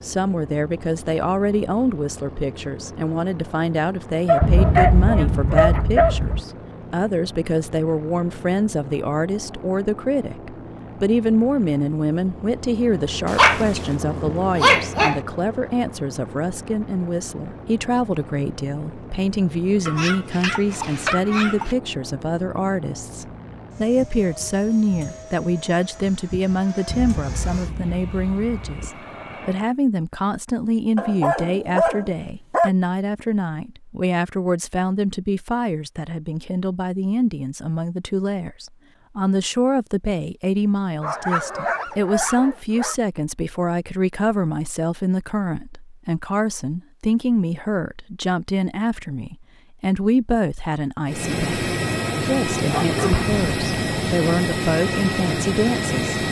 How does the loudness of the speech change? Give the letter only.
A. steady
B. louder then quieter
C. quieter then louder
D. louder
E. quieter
A.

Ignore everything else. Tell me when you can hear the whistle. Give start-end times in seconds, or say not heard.
not heard.